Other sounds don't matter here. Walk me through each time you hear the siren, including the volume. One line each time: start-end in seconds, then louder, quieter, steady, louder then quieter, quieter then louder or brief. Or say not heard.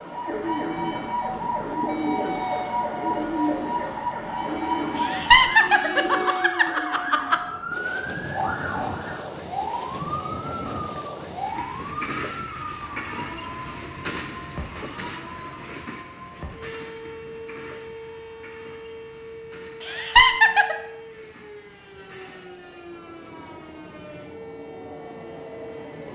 0.0-26.0 quieter.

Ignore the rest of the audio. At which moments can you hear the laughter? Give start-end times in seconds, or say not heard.
5.0-7.4, 19.8-20.8.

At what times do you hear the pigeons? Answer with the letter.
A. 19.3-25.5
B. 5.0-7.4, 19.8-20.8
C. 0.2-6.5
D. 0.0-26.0
C.